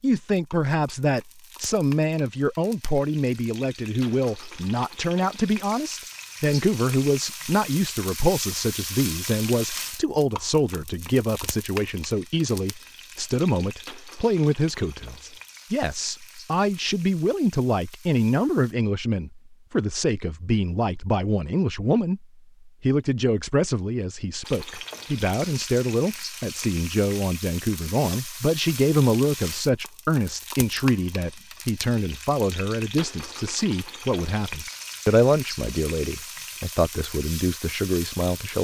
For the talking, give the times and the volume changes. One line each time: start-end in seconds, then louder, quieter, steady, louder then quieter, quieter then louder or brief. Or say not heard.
0.0-38.5 steady.